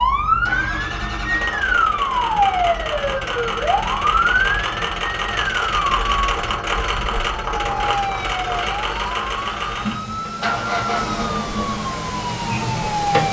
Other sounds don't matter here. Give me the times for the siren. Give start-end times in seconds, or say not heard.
0.0-13.2.